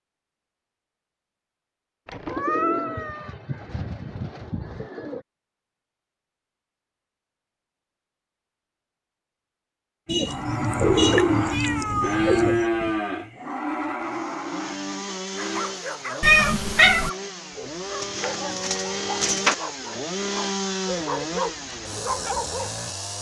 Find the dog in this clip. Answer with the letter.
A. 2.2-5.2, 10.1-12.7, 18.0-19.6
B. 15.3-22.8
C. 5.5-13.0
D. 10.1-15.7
B.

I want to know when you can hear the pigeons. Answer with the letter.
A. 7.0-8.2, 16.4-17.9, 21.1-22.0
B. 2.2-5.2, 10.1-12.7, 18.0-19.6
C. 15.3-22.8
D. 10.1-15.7
B.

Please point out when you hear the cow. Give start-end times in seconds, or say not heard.
10.1-15.7.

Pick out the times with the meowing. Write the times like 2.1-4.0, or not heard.
2.0-3.4, 11.5-13.0, 16.2-17.1.